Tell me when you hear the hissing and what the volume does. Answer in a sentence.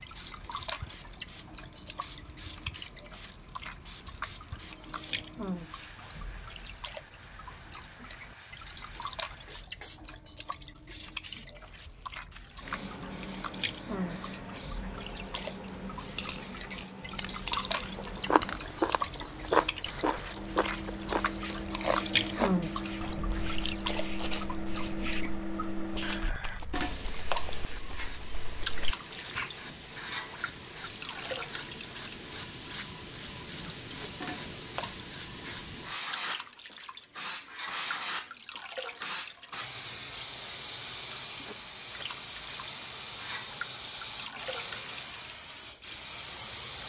You can hear the hissing from 0.0 to 46.8 s, getting louder.